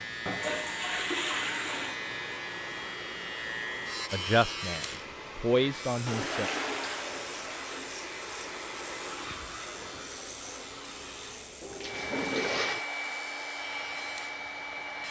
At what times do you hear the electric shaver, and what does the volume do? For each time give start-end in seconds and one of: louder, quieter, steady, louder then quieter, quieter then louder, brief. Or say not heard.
0.0-15.0 quieter.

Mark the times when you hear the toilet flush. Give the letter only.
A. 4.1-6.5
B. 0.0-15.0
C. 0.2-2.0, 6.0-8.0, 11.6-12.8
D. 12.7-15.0
C.